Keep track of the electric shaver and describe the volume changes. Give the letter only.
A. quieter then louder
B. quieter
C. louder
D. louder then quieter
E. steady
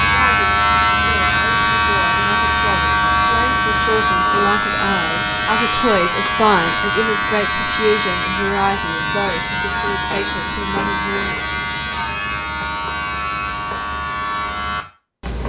B.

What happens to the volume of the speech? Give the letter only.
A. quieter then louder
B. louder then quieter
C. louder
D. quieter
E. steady
B.